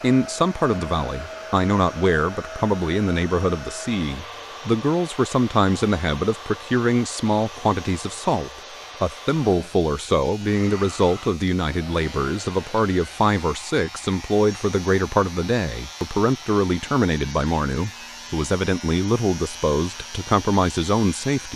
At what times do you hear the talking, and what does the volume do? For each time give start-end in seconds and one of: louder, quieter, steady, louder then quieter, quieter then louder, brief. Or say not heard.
0.0-21.5 steady.